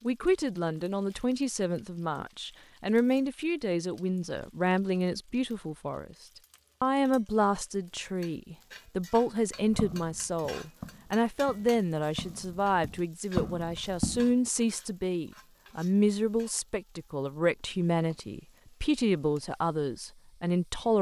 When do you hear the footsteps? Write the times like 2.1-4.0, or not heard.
9.7-14.3.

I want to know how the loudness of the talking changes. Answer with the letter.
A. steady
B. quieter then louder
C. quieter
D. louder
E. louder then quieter
A.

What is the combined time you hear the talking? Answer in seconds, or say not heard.
20 s.